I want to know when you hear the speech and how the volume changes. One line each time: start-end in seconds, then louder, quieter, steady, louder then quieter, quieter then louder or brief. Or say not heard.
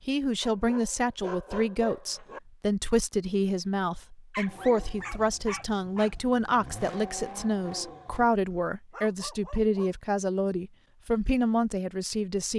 0.1-12.5 steady.